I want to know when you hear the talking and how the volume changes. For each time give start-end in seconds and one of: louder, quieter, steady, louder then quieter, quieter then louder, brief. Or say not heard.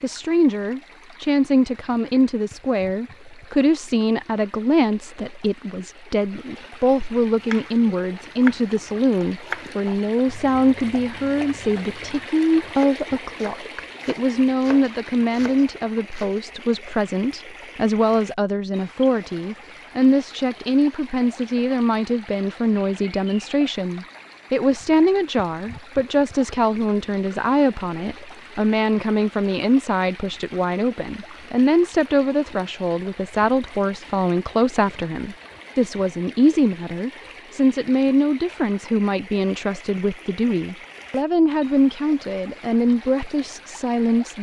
0.0-44.3 steady.